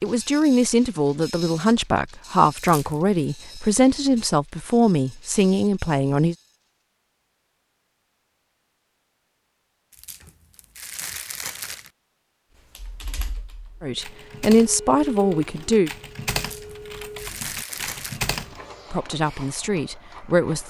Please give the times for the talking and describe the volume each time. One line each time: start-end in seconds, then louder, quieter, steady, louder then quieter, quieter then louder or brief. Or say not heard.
0.0-6.3 steady
13.8-15.9 brief
18.9-20.6 brief.